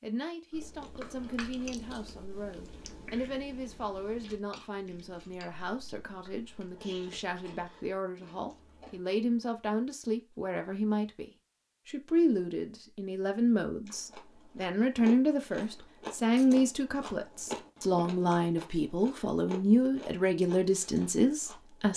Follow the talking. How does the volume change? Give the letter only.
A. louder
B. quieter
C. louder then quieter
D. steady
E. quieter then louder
A.